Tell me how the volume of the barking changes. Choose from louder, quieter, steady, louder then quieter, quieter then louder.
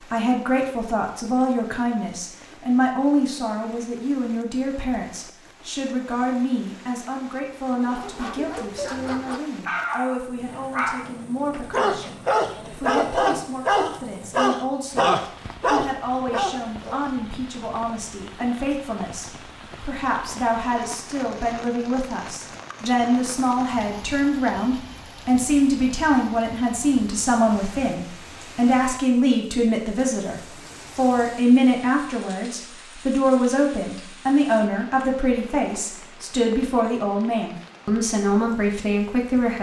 louder.